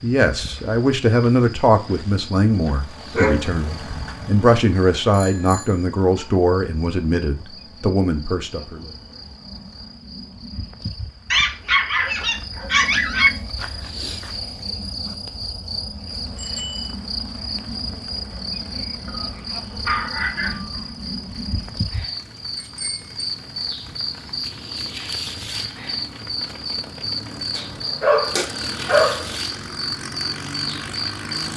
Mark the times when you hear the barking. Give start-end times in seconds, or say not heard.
3.1-4.5, 11.3-13.3, 19.1-20.8, 27.6-29.4.